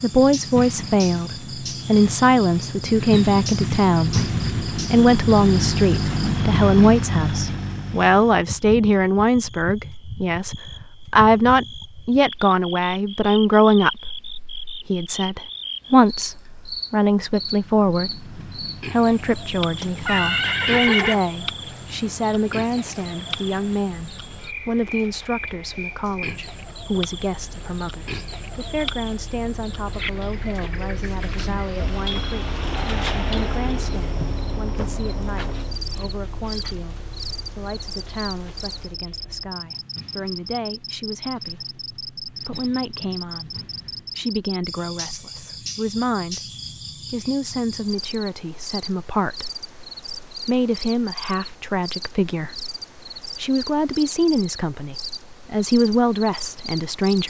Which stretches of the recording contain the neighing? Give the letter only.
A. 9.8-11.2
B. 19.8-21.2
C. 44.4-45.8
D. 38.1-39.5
B.